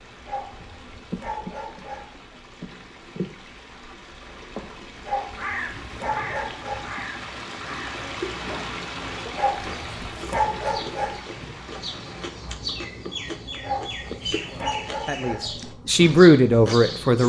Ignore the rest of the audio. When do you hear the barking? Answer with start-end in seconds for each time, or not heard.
0.2-2.1, 5.0-6.9, 9.3-11.2, 13.6-15.4.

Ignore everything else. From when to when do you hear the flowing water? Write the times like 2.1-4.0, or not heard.
0.0-12.6.